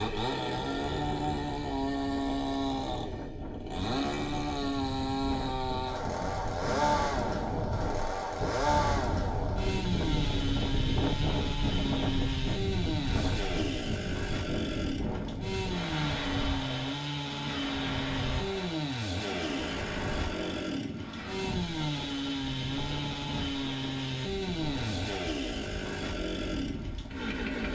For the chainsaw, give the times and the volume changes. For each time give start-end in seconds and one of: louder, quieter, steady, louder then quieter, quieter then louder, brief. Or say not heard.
0.0-27.6 steady.